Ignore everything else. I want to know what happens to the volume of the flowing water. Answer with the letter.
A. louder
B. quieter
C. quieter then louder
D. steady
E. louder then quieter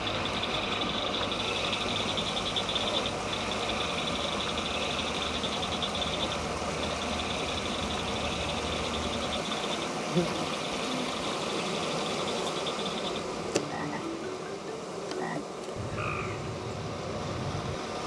B.